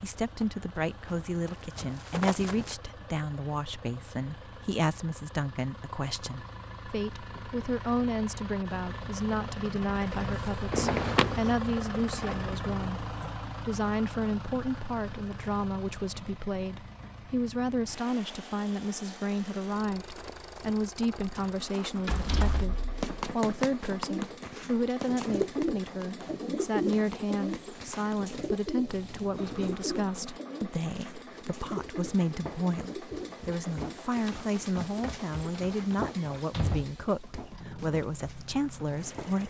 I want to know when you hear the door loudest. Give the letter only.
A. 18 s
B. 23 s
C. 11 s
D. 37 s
C.